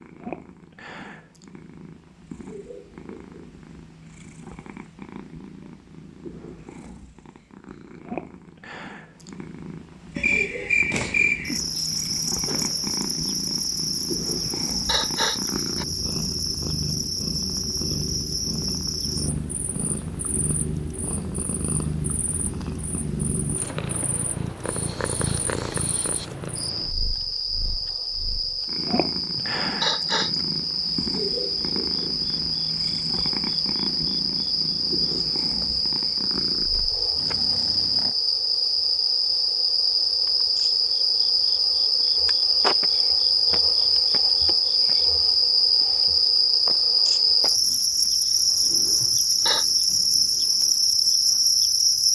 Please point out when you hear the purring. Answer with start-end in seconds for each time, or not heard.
0.0-38.1.